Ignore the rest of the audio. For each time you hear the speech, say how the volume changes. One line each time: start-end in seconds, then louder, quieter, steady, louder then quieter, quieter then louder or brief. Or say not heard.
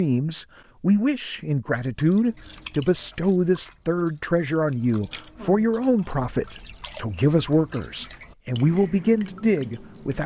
0.0-10.2 steady.